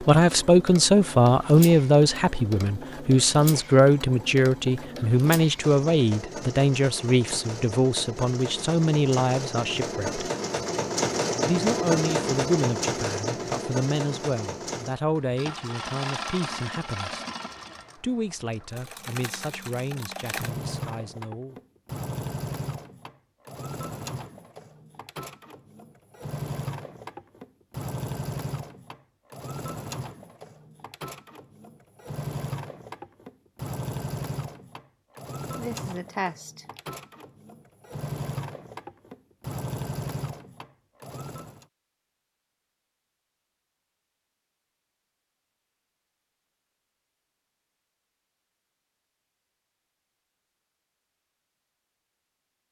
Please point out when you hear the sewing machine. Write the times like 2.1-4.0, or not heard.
0.0-41.6.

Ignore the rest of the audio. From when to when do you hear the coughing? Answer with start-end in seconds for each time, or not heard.
35.5-36.8.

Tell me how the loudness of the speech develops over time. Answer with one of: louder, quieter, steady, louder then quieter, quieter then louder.
quieter.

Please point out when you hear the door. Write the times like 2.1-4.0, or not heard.
not heard.